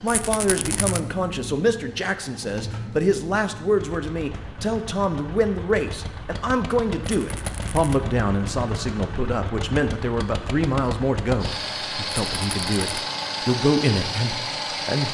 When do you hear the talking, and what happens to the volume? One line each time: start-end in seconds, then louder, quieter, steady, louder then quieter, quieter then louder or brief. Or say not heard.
0.0-15.0 steady.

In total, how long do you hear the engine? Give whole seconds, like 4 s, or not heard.
15 s.